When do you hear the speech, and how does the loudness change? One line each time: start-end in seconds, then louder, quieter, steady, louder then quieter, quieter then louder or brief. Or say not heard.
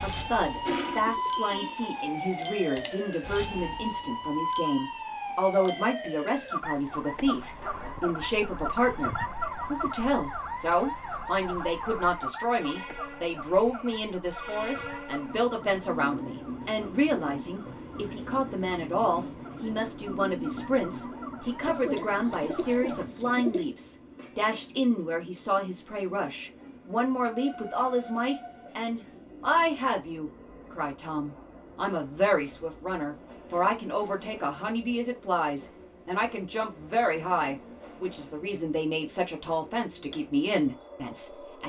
0.0-41.6 steady.